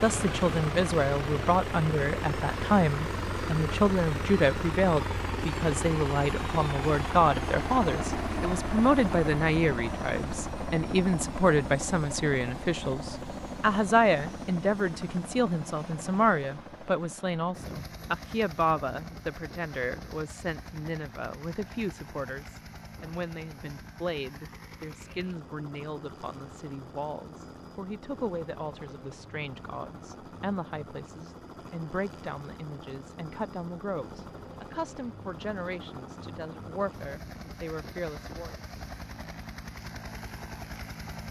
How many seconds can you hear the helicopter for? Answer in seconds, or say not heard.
41 s.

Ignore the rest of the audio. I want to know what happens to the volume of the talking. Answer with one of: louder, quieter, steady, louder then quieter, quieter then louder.
quieter.